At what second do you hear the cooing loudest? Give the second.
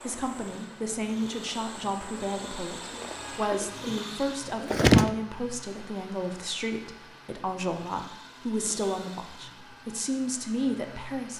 5 s.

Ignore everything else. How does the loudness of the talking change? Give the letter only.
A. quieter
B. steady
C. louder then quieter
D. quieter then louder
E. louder
B.